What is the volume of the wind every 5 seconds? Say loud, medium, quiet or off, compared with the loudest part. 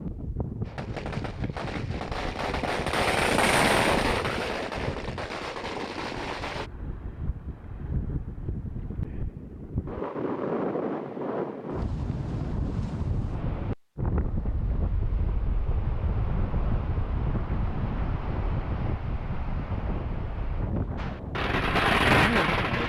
medium, medium, loud, loud, loud.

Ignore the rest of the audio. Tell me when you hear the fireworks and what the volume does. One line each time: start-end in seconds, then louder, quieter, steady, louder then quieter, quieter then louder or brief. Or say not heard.
0.7-6.7 louder then quieter
20.9-22.8 brief.